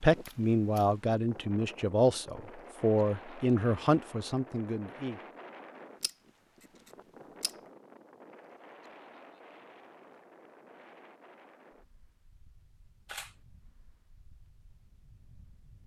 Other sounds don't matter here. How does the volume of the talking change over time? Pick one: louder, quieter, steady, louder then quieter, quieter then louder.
steady.